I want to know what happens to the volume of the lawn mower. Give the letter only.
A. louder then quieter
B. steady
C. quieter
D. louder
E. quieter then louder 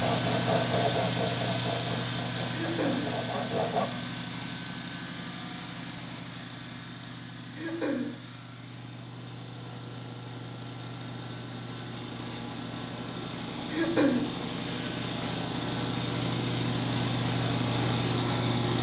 E.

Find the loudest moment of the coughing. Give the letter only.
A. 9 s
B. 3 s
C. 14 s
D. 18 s
C.